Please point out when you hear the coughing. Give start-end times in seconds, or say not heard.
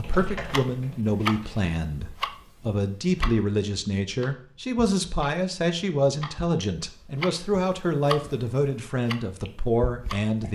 not heard.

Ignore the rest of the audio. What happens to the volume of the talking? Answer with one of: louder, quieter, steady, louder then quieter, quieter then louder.
steady.